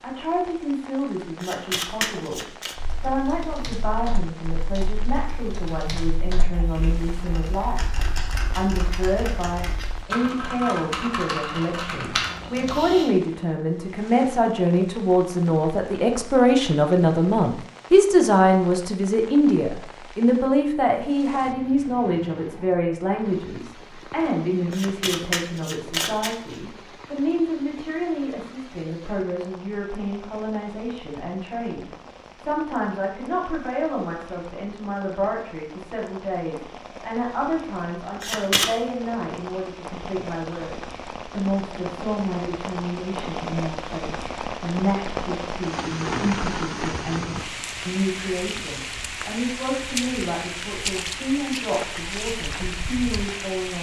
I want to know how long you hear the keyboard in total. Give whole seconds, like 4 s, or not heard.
10 s.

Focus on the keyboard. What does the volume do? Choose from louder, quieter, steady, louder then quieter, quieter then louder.
louder.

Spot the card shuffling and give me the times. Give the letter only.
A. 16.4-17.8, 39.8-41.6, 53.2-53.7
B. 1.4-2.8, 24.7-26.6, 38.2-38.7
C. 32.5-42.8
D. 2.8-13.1
B.